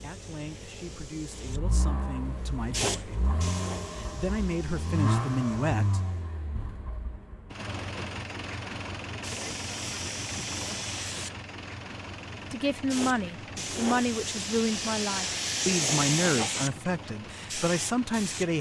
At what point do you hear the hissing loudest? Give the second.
16 s.